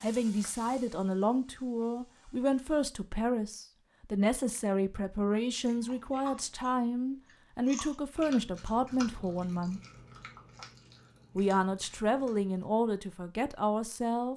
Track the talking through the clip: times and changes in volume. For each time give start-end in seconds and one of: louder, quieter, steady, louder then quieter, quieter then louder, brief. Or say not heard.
0.0-9.8 steady
11.3-14.3 brief.